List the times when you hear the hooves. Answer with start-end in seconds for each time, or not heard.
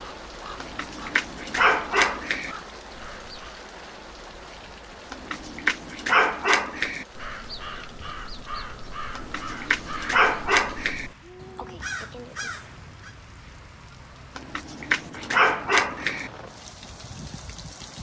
not heard.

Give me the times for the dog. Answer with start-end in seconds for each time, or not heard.
0.6-2.5, 5.1-7.0, 9.2-11.1, 14.3-16.3.